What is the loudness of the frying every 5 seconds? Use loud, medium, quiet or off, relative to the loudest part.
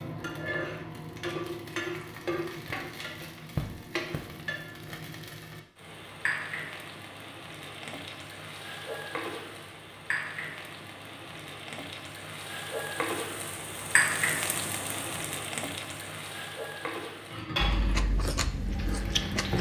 loud, medium, loud, loud.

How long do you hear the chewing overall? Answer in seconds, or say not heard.
2 s.